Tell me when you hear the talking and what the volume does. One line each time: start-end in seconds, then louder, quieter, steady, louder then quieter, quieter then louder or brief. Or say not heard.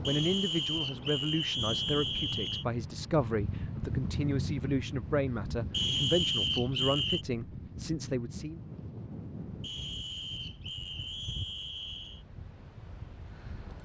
0.1-8.6 steady.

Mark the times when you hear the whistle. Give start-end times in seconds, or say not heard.
0.0-2.6, 5.7-7.2, 9.6-12.2.